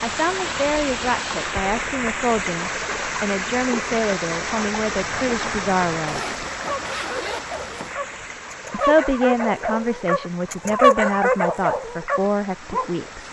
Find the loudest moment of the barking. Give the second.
11 s.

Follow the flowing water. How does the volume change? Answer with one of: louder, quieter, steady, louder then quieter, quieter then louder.
quieter.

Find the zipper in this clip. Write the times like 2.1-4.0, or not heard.
6.0-8.0.